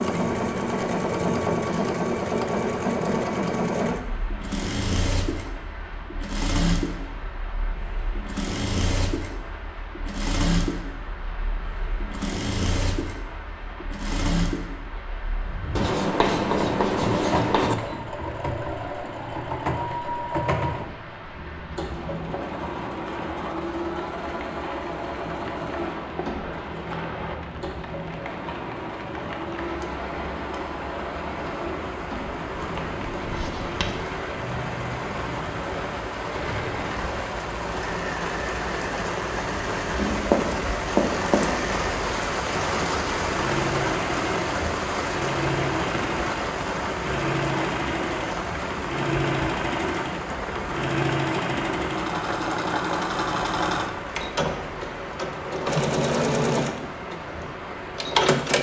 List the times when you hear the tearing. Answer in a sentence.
The tearing can't be heard in this clip.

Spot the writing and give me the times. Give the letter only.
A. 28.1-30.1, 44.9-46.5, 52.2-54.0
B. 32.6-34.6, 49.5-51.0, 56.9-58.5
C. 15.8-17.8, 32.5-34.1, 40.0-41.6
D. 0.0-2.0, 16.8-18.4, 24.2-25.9
C.